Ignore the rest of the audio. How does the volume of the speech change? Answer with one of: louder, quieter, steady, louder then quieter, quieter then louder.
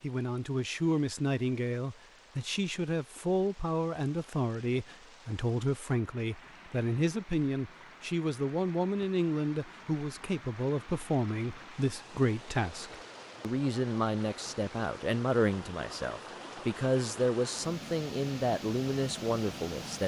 steady.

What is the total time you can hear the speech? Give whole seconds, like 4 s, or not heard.
20 s.